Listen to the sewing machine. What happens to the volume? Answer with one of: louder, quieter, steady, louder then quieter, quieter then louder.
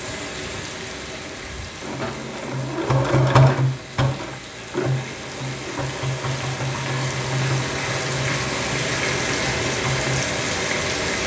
quieter.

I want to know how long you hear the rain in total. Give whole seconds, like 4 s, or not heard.
11 s.